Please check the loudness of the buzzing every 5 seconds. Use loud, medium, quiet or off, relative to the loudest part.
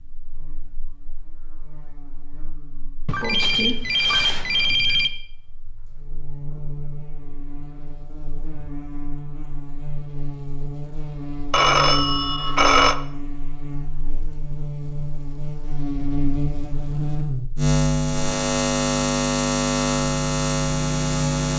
quiet, quiet, medium, loud, loud.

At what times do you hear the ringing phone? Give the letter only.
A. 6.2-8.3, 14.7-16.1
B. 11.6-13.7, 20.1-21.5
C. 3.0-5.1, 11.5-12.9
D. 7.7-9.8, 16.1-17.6
C.